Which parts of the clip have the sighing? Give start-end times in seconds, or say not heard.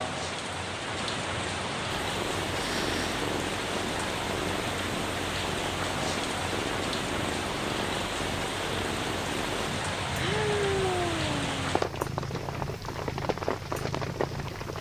2.5-3.2, 10.2-11.6.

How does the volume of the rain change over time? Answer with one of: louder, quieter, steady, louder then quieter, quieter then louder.
steady.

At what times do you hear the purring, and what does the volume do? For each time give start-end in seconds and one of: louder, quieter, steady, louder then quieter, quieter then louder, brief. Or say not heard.
1.9-14.7 steady.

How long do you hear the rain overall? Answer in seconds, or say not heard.
15 s.